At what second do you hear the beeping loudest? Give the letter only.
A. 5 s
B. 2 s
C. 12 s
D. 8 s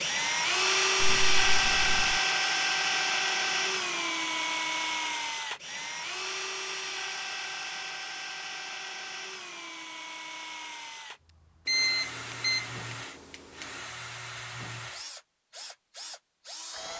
C.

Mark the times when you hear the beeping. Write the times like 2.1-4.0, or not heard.
1.0-2.2, 11.7-13.7.